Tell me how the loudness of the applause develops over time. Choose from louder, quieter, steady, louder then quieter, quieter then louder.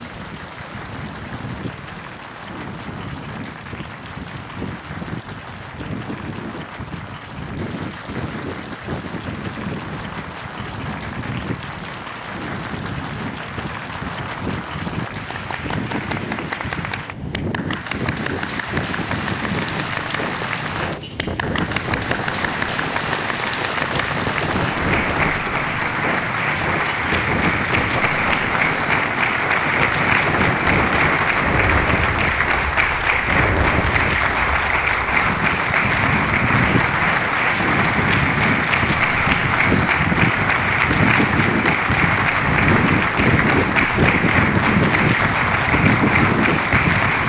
louder.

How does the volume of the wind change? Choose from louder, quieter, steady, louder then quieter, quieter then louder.
louder.